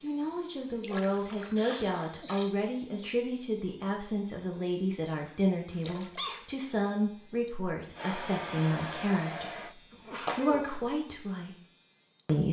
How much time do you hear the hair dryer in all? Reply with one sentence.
You can hear the hair dryer for 2 seconds altogether.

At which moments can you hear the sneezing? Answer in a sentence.
You can hear the sneezing from 1.6 to 2.5 s, from 5.2 to 6.5 s and from 9.9 to 10.7 s.